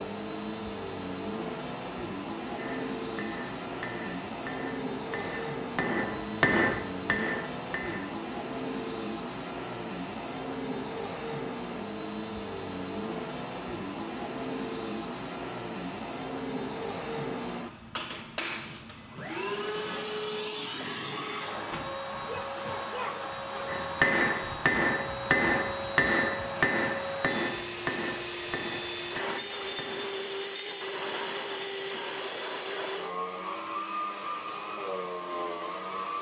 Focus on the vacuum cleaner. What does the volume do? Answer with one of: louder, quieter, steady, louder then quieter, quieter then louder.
steady.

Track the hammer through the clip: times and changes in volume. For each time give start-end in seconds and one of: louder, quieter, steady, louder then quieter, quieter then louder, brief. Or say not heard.
2.5-8.2 louder then quieter
23.6-30.2 quieter.